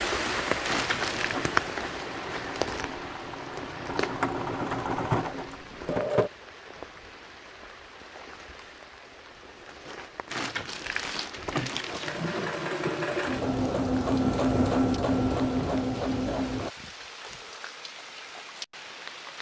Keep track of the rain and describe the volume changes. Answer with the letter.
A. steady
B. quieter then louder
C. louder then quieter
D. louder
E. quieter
E.